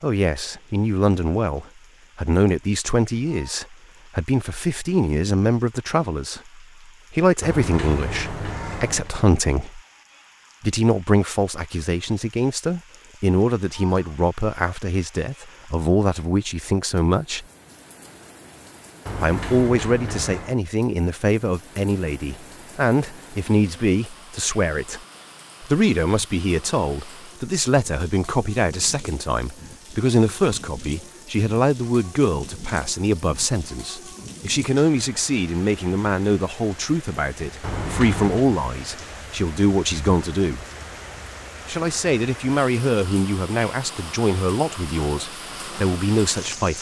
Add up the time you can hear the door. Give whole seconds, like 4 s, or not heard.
4 s.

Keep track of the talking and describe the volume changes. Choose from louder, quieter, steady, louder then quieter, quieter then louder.
steady.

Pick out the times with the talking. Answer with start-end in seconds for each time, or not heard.
0.0-9.8, 10.6-17.4, 19.2-25.0, 25.6-40.6, 41.6-46.7.